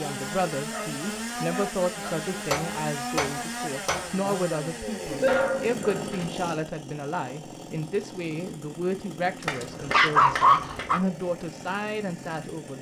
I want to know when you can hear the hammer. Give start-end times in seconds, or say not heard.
2.5-4.2, 9.4-11.0.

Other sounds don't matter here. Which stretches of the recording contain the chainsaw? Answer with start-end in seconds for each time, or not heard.
0.0-12.7.